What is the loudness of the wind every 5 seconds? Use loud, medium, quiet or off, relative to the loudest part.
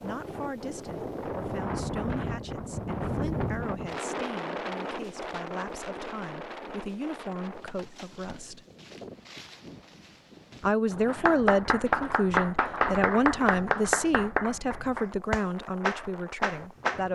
loud, medium, quiet, quiet.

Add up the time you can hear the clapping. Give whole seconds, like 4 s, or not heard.
6 s.